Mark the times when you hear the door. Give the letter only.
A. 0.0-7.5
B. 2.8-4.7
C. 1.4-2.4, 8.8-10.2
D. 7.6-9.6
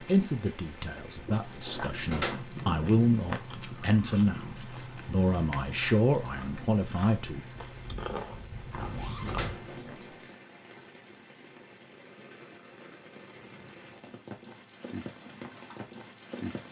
C.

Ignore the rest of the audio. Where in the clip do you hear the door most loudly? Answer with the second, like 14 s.
2 s.